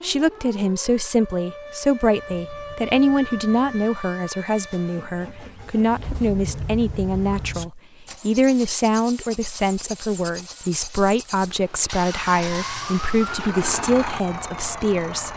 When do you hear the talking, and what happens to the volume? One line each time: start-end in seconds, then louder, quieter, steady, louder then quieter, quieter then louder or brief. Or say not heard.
0.0-15.3 steady.